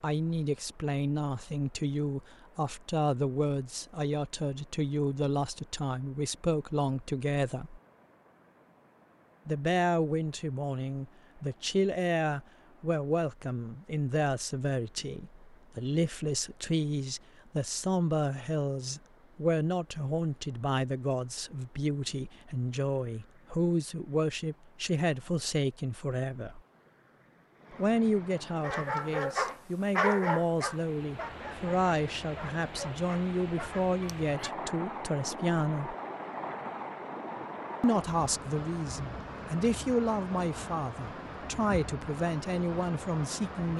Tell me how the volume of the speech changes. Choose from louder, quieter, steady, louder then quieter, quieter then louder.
steady.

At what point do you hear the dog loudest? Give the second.
30 s.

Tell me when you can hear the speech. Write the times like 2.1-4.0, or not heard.
0.0-7.8, 9.4-26.6, 27.8-36.0, 37.8-43.7.